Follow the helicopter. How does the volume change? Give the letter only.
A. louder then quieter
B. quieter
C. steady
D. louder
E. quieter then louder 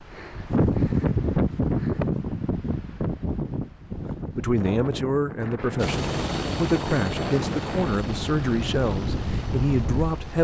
B.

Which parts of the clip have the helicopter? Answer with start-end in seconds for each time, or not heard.
5.8-10.3.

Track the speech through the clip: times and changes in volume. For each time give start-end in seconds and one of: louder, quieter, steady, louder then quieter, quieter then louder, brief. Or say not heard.
4.3-10.3 steady.